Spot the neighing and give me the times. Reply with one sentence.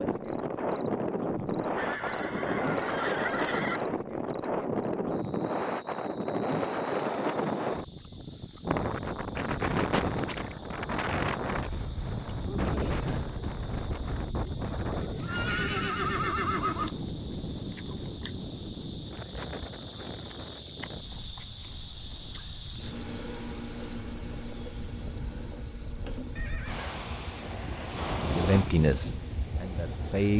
You can hear the neighing from 1.8 to 3.8 s, from 15.2 to 16.9 s and from 26.4 to 26.9 s.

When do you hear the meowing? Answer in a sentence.
The meowing can't be heard in this clip.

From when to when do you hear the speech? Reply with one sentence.
You can hear the speech from 28.3 to 30.3 s.